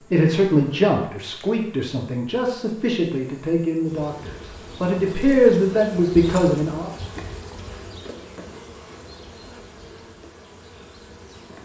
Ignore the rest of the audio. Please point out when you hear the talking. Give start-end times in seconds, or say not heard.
0.1-6.9.